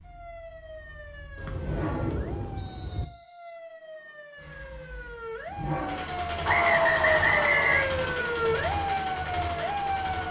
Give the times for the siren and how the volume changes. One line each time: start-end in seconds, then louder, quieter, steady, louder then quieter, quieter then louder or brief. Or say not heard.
0.0-10.2 louder.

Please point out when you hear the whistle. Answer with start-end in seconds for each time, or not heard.
1.4-3.3, 6.5-7.9.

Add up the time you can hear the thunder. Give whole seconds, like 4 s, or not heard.
2 s.